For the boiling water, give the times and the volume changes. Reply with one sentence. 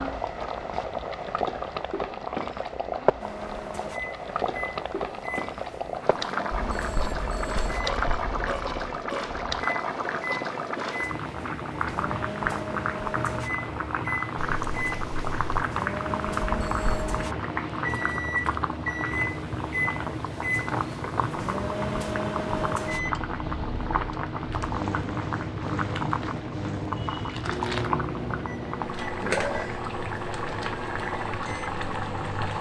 You can hear the boiling water from 0.0 to 32.5 s, at a steady volume.